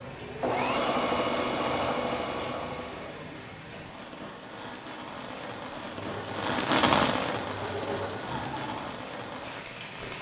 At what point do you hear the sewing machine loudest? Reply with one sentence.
The loudest moment of the sewing machine is at 1 second.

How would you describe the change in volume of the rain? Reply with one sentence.
The loudness of the rain goes up, then down.